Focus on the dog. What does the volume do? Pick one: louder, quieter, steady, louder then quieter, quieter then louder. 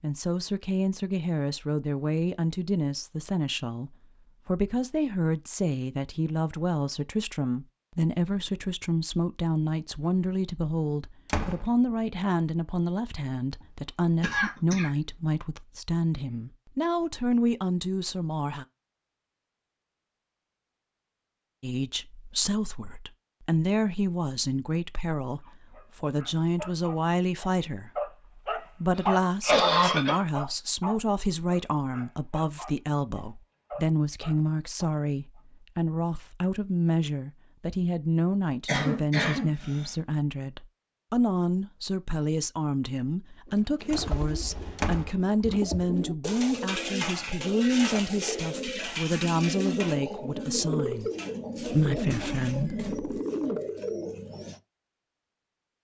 louder then quieter.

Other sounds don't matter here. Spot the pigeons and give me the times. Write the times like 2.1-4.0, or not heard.
43.5-54.6.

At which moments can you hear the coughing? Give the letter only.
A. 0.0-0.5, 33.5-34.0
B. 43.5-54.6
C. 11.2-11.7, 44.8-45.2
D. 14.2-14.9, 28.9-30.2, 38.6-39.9
D.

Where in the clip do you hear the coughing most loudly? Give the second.
30 s.